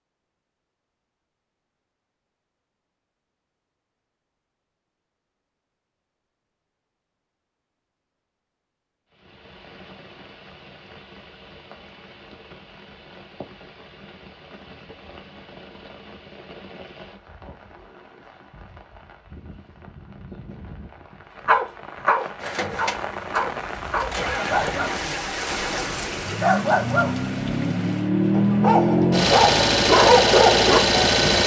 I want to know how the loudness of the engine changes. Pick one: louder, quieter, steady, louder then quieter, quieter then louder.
louder.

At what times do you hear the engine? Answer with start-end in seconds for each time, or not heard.
22.4-31.4.